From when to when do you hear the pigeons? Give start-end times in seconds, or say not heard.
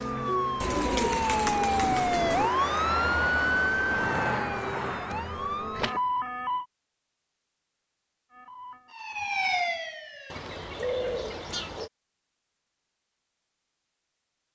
0.6-2.5, 10.3-11.9.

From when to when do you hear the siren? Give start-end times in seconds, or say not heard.
0.0-6.7, 8.3-10.4.